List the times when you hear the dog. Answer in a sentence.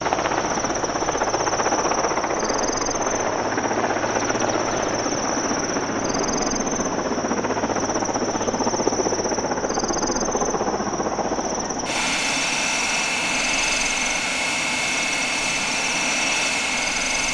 You can't hear the dog here.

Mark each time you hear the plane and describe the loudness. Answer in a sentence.
The plane can be heard from 0.0 to 17.2 s, at a steady volume.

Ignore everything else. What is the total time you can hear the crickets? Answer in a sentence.
You can hear the crickets for 17 seconds altogether.